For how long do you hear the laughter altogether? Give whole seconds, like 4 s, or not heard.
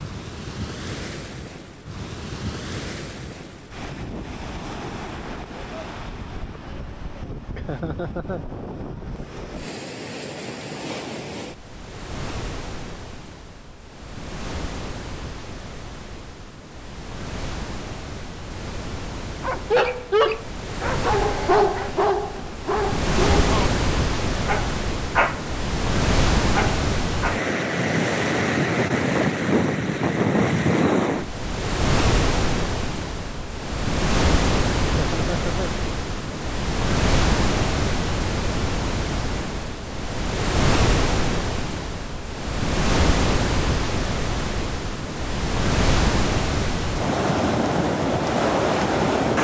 2 s.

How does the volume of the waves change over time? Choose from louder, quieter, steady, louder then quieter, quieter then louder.
louder.